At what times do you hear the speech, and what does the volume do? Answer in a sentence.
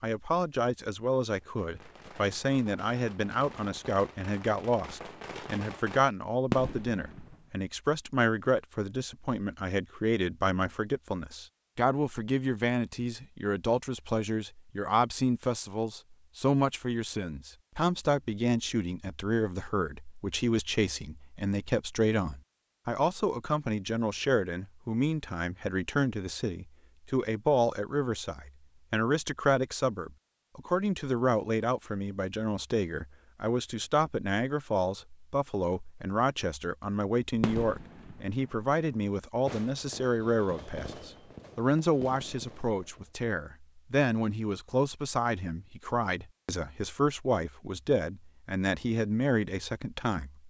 You can hear the speech from 0.0 to 50.4 s, at a steady volume.